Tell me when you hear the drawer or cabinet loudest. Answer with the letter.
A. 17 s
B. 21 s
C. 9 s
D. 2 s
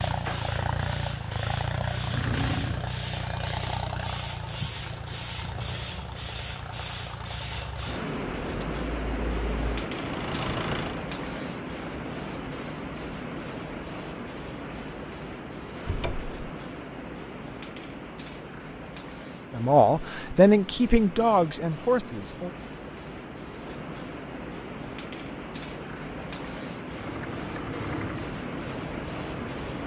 D.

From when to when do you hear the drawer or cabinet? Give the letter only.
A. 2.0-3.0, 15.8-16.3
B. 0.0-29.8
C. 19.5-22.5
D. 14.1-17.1
A.